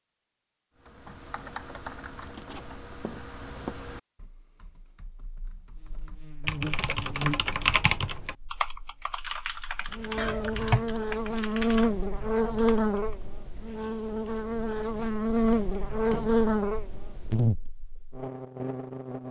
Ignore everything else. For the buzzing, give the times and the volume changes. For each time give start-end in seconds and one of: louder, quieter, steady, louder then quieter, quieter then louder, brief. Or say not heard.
5.7-19.2 louder.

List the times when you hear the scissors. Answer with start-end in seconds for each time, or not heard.
2.2-3.8, 10.2-10.8, 14.7-16.6.